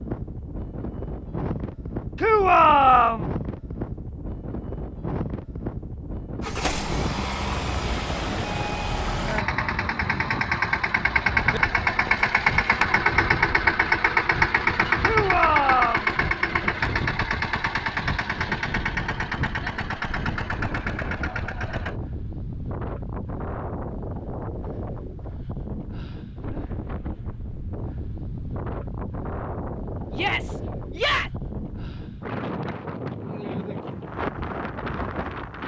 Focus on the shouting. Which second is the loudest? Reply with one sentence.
The volume of the shouting peaks at 3 seconds.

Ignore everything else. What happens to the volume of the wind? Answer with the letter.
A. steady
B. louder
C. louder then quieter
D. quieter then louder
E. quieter
A.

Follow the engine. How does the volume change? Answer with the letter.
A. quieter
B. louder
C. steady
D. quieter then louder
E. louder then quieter
E.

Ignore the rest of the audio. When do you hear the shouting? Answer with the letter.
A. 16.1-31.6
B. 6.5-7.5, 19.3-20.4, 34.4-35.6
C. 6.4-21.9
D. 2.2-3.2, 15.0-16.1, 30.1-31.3
D.